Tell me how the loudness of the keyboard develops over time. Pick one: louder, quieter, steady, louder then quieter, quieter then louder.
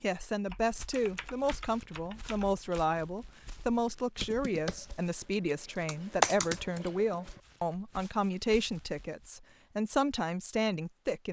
louder.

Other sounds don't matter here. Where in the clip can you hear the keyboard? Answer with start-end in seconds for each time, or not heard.
0.5-7.4.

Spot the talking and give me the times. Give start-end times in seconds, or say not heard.
0.0-11.2.